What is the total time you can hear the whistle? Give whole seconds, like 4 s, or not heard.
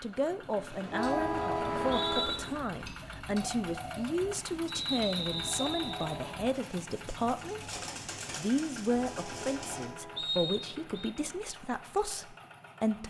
3 s.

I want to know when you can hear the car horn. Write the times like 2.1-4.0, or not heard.
0.9-2.7, 5.2-6.5, 8.8-10.2.